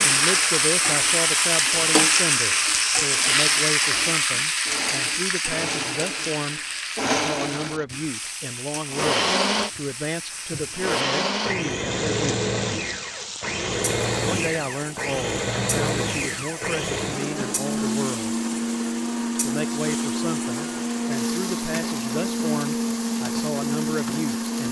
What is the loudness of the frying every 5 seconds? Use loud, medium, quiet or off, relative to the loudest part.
loud, medium, quiet, quiet, quiet.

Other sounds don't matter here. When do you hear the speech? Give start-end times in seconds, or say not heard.
0.0-12.4, 14.2-18.4, 19.4-24.6.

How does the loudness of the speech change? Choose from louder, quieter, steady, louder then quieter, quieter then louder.
steady.